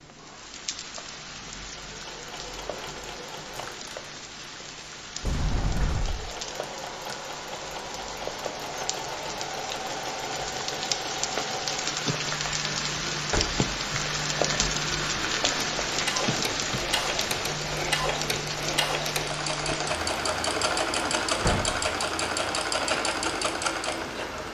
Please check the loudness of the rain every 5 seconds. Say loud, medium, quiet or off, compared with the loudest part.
medium, medium, loud, loud, medium.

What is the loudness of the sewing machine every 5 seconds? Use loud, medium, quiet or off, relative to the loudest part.
quiet, medium, medium, loud, loud.